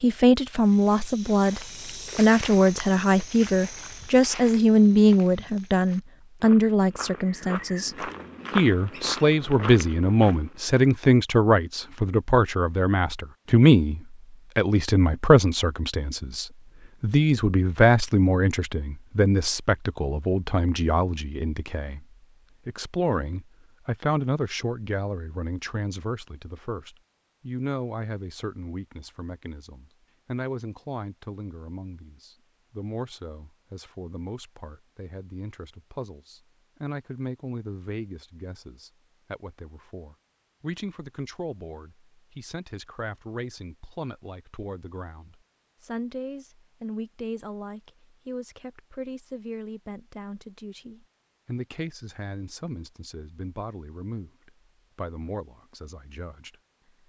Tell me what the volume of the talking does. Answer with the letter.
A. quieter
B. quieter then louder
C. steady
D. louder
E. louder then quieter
A.